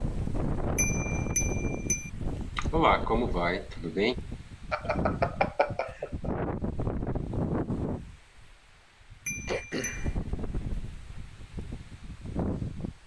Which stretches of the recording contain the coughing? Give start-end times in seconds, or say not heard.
2.5-4.2, 9.4-10.2.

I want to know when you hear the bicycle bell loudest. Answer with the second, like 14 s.
5 s.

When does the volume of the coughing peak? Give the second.
3 s.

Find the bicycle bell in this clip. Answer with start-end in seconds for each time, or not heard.
0.8-2.1, 4.7-6.3, 9.2-10.1.